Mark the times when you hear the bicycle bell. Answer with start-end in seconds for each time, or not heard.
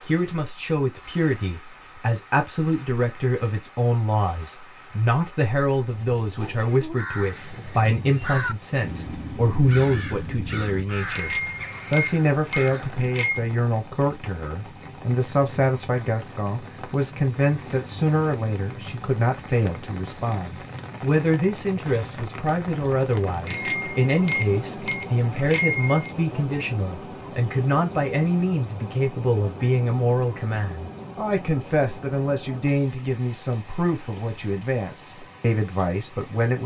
11.1-13.4, 23.4-26.1.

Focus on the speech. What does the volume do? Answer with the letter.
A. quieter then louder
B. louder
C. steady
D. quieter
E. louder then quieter
C.